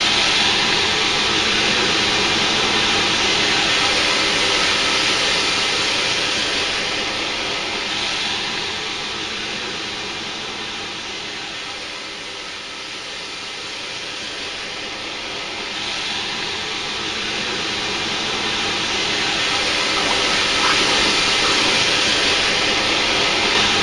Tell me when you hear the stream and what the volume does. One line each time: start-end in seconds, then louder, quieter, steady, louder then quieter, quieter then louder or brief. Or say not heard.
0.0-23.7 quieter then louder.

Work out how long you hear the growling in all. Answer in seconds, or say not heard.
2 s.